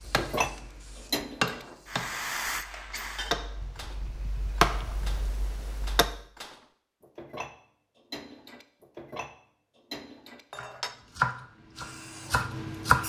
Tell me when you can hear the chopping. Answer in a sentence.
You can hear the chopping from 0.0 to 6.2 s and from 10.6 to 13.0 s.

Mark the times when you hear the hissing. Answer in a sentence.
The hissing can be heard from 0.0 to 3.4 s and from 11.5 to 13.0 s.